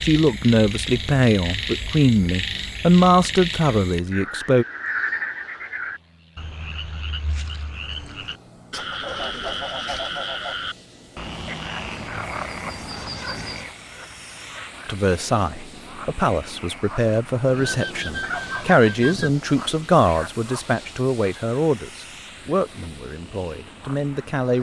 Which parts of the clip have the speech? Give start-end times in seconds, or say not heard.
0.0-4.7, 14.8-24.5.